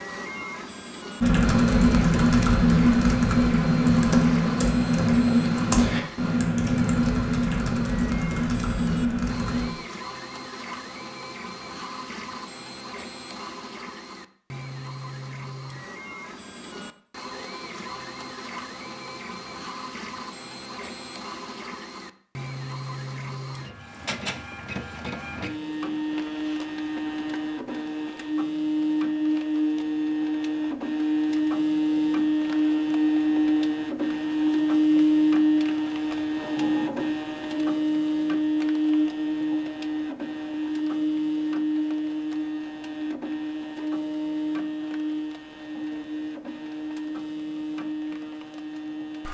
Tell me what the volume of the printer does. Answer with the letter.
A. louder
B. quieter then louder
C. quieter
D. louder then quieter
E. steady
D.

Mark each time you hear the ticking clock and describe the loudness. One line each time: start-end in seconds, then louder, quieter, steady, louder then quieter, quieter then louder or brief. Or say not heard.
not heard.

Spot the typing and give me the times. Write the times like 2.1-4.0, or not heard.
1.2-9.7.